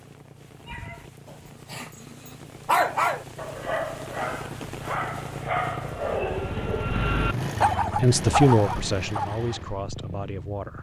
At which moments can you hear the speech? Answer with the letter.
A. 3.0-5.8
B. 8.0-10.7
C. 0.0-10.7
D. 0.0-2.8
B.